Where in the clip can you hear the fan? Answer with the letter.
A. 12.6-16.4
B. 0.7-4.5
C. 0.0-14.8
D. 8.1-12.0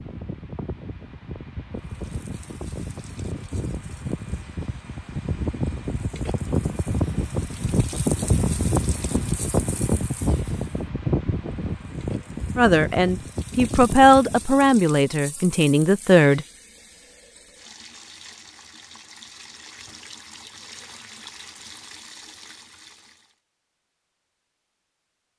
C.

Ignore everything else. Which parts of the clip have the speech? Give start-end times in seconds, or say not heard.
12.6-16.4.